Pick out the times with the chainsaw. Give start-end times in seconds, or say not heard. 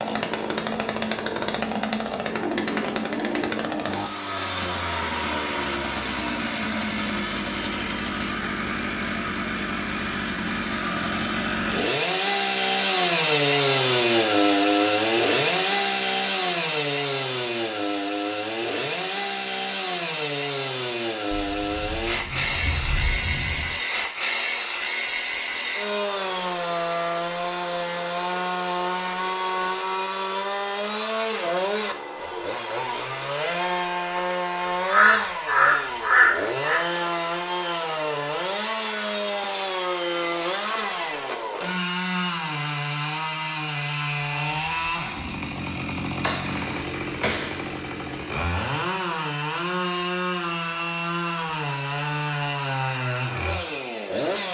0.0-54.4.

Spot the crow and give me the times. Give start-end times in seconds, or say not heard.
34.6-36.8.